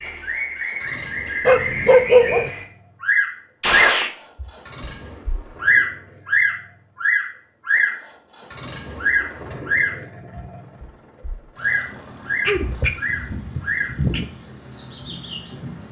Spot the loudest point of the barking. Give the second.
2 s.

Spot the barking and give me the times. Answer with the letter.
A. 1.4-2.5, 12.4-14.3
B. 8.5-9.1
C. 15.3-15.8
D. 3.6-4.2
A.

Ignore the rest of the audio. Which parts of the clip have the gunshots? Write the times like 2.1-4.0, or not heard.
3.6-4.2.